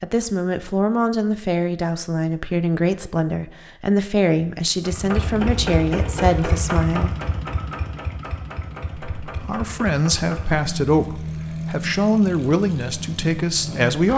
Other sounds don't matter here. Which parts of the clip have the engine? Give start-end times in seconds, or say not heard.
4.8-14.1.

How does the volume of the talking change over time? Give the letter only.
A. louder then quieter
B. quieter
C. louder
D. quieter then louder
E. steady
E.